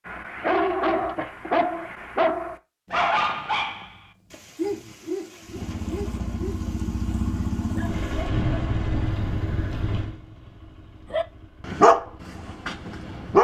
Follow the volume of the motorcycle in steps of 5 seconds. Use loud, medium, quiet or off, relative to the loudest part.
off, loud, quiet.